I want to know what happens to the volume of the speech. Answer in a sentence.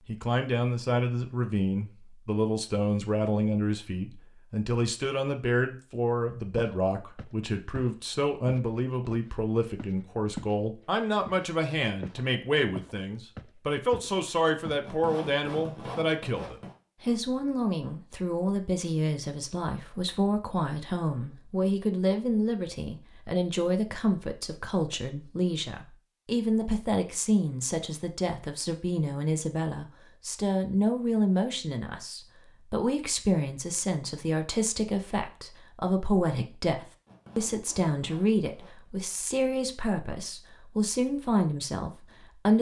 The volume of the speech stays about the same.